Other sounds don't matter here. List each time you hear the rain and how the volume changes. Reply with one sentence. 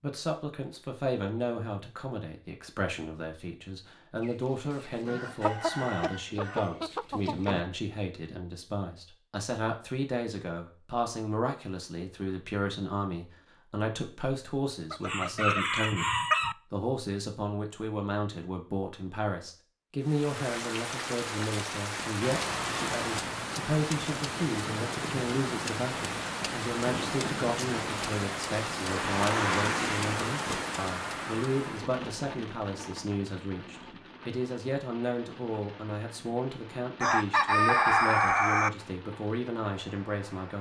The rain can be heard from 20.0 to 40.5 s, getting quieter.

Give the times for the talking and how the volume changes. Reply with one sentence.
The talking can be heard from 0.0 to 16.1 s, at a steady volume; and from 16.7 to 40.5 s, at a steady volume.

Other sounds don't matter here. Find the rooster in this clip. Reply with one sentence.
The rooster can be heard from 4.2 to 7.7 s, from 14.9 to 16.6 s and from 37.0 to 38.7 s.